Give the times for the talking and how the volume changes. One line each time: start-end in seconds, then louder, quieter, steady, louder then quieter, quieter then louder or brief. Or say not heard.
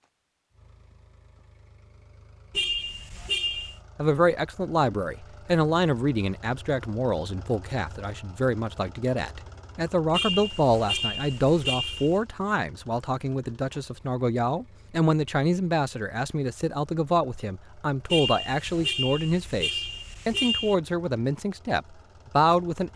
4.0-22.9 steady.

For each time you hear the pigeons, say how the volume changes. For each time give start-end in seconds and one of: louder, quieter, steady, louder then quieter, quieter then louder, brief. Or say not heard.
not heard.